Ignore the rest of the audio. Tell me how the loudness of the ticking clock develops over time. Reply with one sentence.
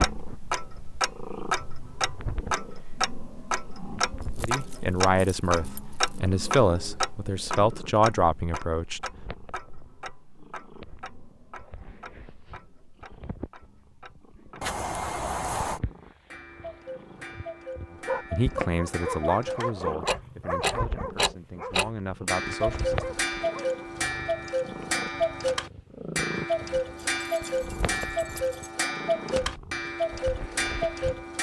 The volume of the ticking clock goes down, then up.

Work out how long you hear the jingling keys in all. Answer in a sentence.
You can hear the jingling keys for 5 seconds altogether.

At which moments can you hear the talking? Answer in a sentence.
You can hear the talking from 4.4 to 9.1 s and from 17.9 to 23.1 s.